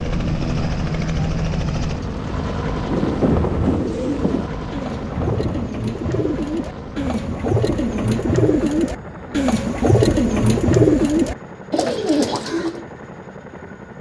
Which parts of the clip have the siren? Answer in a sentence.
The siren can't be heard in this clip.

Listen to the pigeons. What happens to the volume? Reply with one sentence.
The volume of the pigeons goes up.